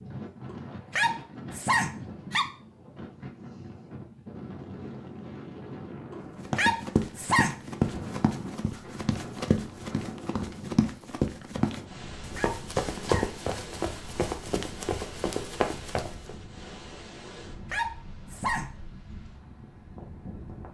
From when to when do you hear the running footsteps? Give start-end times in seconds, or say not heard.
6.5-16.4.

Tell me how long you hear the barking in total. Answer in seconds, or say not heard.
6 s.